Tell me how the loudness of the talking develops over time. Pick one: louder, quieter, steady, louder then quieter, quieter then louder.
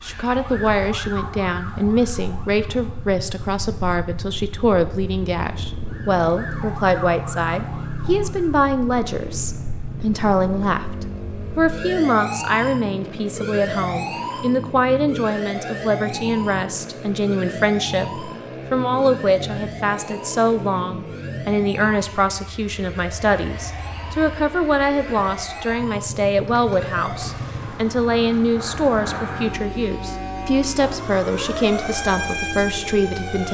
steady.